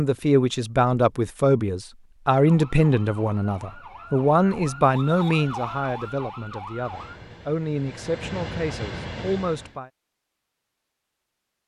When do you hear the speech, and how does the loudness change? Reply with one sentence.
You can hear the speech from 0.0 to 9.9 s, getting quieter.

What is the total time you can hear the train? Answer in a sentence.
You can hear the train for 3 seconds altogether.